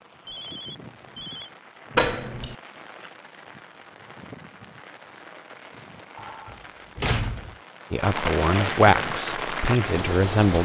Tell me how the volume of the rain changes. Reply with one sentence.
The volume of the rain goes up.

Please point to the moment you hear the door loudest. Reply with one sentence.
The loudest moment of the door is at 2 seconds.